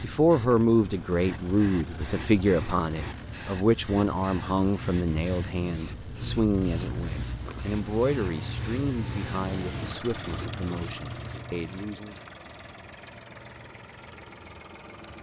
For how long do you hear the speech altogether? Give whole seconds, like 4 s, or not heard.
12 s.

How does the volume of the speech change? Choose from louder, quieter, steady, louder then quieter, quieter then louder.
quieter.